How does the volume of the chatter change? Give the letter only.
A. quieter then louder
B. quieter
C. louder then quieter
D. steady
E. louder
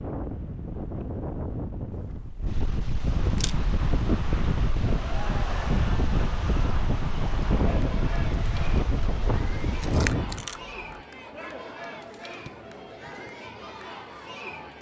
D.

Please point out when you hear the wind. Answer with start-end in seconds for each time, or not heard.
0.0-10.4.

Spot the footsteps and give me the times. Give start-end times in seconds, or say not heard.
not heard.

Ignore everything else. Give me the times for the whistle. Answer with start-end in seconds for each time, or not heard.
not heard.